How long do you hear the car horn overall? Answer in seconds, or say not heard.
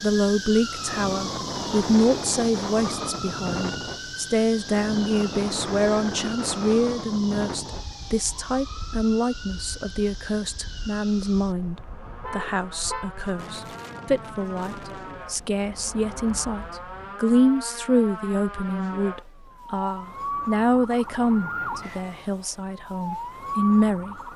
2 s.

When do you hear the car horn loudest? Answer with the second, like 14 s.
13 s.